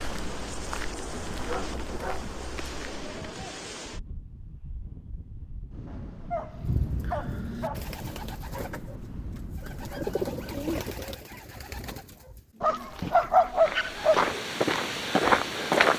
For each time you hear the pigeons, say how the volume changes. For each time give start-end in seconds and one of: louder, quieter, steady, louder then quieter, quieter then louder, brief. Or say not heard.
6.5-13.7 louder then quieter.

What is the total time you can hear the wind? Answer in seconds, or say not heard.
11 s.